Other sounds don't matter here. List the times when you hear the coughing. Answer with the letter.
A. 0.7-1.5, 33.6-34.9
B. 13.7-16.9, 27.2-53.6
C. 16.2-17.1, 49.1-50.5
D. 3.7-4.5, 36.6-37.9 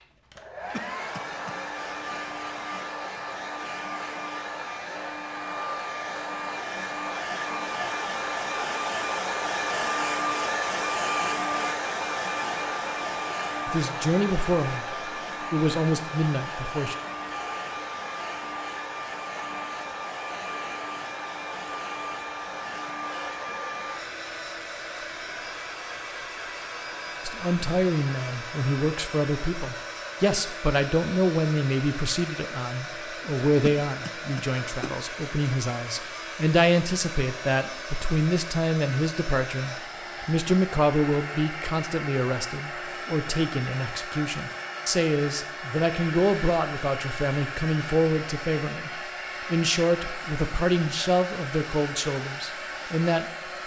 A.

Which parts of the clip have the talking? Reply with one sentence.
You can hear the talking from 13.7 to 16.9 s and from 27.2 to 53.6 s.